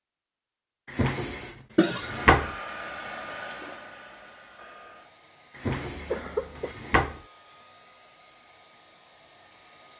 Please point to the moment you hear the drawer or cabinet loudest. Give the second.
2 s.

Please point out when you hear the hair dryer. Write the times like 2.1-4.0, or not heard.
1.9-9.9.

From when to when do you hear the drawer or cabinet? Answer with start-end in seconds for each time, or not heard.
0.9-2.5, 5.5-7.2.